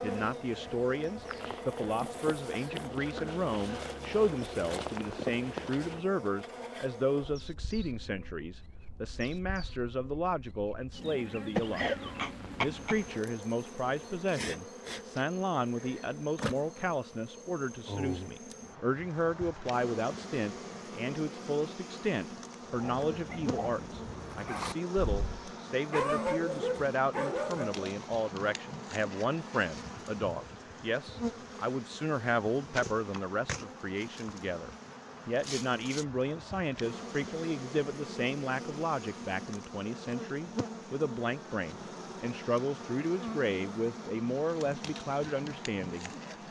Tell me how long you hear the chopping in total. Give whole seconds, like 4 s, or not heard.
not heard.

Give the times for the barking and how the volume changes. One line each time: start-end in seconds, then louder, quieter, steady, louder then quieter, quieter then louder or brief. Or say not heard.
22.7-27.9 louder.